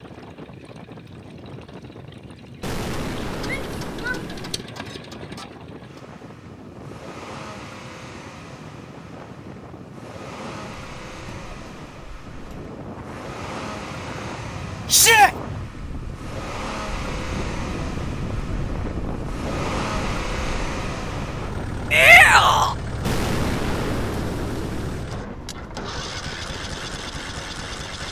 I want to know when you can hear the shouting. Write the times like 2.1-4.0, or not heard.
3.5-4.2, 14.9-15.3, 21.9-22.8.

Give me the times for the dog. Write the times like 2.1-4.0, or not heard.
not heard.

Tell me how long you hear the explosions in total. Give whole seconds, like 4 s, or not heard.
4 s.